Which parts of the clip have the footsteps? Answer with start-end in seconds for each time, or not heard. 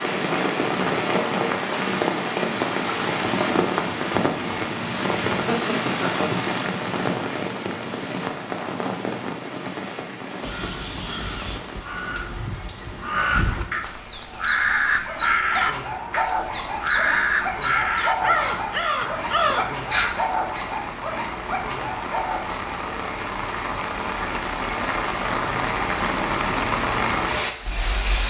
not heard.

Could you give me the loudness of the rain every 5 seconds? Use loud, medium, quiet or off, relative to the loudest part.
loud, loud, quiet, quiet, medium, loud.